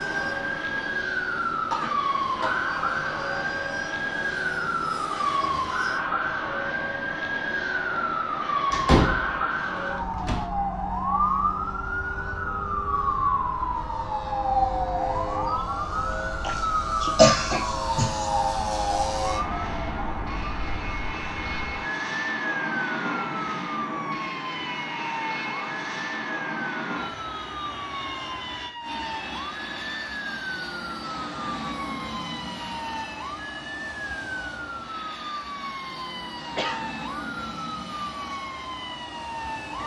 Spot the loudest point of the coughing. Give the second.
17 s.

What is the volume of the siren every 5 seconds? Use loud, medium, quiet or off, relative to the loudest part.
loud, loud, loud, loud, medium, medium, medium, medium.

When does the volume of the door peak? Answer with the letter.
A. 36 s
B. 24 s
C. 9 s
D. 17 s
C.